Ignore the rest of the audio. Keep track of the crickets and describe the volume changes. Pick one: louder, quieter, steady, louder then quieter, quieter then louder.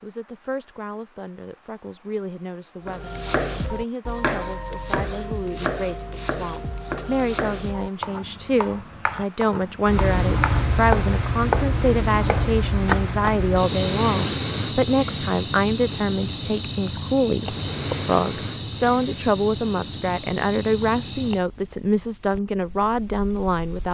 louder then quieter.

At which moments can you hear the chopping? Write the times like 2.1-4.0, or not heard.
2.9-13.3.